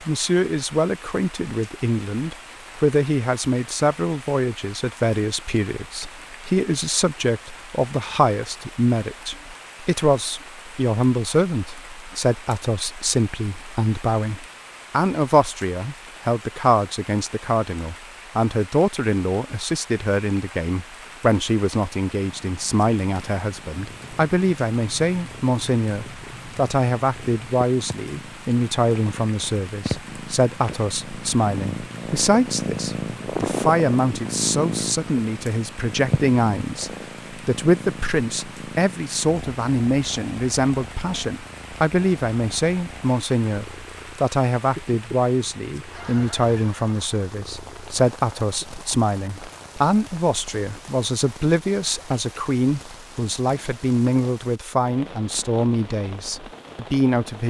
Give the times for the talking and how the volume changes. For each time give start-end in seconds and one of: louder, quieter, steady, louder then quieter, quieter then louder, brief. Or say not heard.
0.1-57.4 steady.